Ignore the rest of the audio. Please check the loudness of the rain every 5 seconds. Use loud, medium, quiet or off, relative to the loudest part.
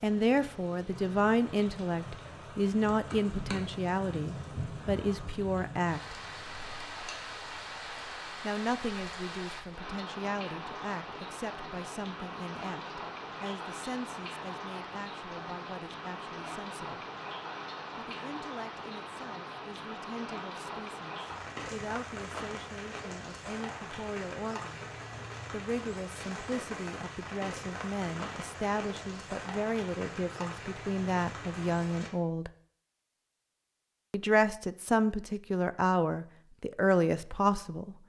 loud, loud, loud, loud, loud, loud, loud, off.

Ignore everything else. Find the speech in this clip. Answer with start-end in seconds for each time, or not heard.
0.0-6.2, 8.4-17.1, 17.9-24.9, 25.5-32.5, 34.1-38.0.